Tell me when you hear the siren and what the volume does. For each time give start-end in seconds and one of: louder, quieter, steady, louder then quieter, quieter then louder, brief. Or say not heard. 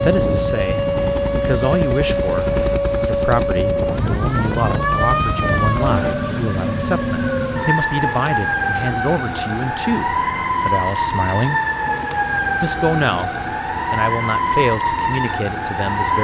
0.0-16.1 steady.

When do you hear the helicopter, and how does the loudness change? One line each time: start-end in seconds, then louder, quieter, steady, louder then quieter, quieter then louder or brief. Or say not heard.
0.0-6.2 steady.